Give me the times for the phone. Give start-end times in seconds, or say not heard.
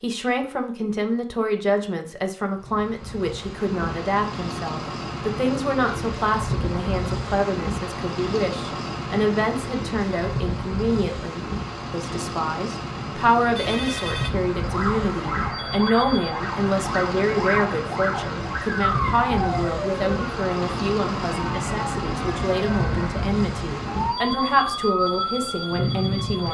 13.6-14.3.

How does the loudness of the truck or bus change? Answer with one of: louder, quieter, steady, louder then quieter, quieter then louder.
steady.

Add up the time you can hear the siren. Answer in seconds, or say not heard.
12 s.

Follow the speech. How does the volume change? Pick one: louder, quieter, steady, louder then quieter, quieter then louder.
steady.